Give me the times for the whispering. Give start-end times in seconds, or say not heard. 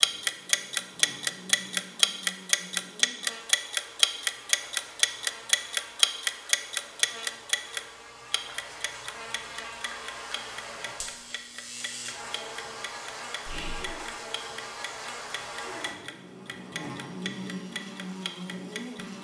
13.4-13.9.